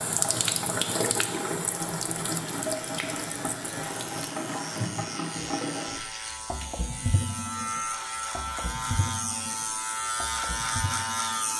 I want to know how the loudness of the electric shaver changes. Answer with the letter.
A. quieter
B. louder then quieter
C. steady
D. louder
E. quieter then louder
D.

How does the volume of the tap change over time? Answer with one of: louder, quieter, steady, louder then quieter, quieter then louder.
quieter.